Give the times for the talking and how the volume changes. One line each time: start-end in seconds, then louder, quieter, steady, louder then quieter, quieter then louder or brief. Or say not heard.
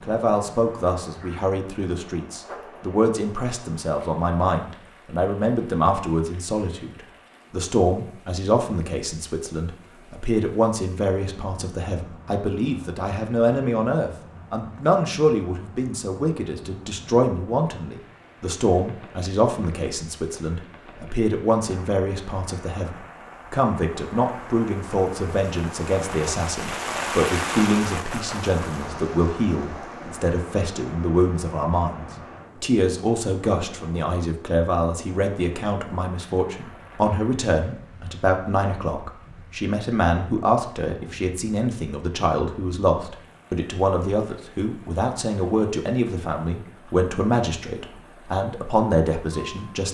0.0-49.8 steady.